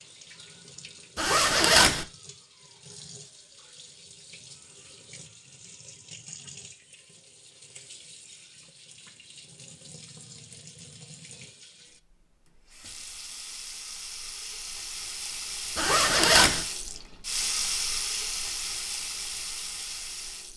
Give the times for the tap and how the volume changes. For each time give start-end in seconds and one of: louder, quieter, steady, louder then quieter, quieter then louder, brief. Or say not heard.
0.0-20.5 louder.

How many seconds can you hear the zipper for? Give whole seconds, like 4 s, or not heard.
2 s.